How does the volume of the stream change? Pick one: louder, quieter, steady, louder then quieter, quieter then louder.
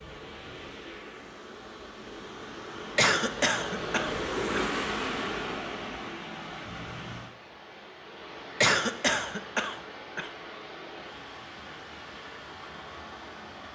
louder then quieter.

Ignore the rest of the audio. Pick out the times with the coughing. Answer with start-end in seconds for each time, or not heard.
3.0-4.7, 8.6-10.3.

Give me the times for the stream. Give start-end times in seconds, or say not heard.
0.0-13.6.